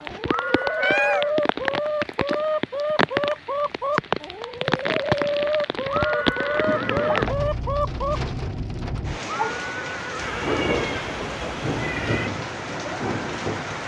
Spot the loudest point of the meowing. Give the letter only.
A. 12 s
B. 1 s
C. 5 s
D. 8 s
B.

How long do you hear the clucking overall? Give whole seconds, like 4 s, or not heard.
8 s.